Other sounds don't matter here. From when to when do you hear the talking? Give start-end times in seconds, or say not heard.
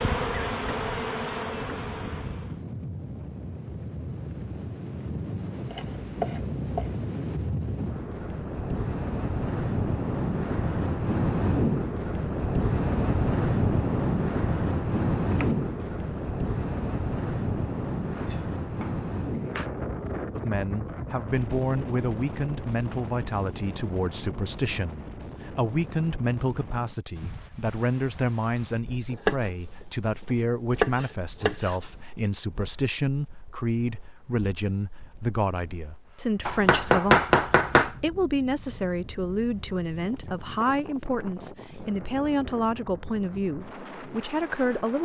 20.4-45.0.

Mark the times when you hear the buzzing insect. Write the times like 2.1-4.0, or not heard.
0.0-2.6.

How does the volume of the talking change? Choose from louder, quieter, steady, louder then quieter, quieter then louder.
steady.